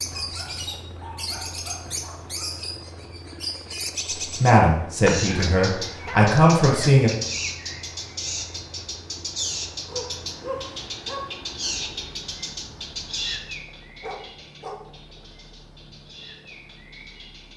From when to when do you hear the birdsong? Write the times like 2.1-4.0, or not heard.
0.0-17.5.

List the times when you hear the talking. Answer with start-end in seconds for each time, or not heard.
4.2-7.1.